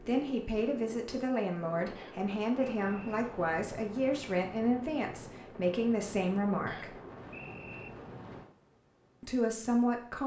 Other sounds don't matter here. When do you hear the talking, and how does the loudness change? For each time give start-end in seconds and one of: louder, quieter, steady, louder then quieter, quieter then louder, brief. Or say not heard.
0.0-7.0 steady
9.2-10.2 brief.